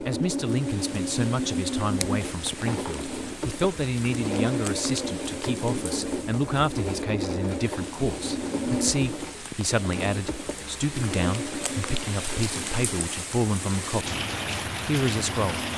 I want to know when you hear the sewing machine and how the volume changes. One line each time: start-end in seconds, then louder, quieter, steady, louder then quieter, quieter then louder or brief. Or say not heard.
0.0-15.7 quieter.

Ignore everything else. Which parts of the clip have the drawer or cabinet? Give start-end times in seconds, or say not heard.
1.9-3.0.